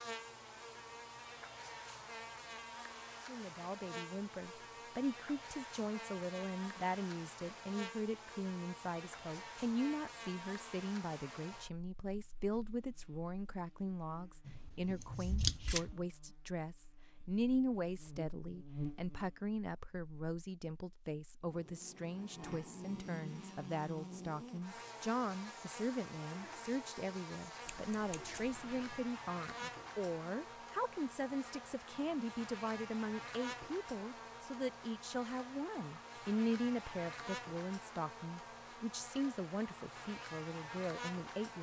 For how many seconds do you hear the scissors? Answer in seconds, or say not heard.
3 s.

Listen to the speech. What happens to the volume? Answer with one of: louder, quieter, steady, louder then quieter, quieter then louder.
steady.